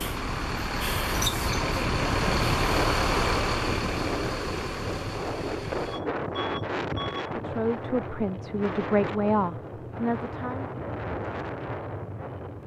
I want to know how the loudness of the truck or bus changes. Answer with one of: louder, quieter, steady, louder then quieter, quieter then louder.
quieter.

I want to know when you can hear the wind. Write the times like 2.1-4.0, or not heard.
0.0-12.6.